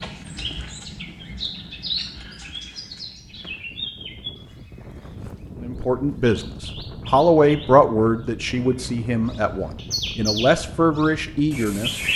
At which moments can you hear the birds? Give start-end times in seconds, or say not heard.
0.0-12.1.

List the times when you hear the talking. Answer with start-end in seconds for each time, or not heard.
5.6-12.0.